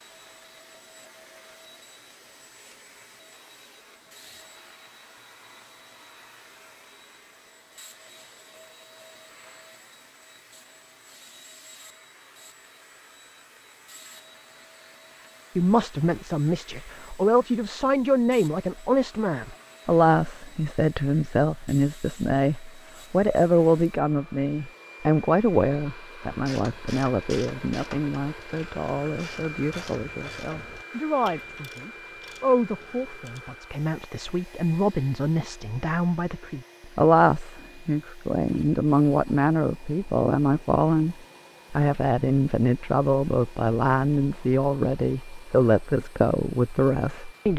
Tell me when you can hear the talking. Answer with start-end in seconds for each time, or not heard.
15.6-47.5.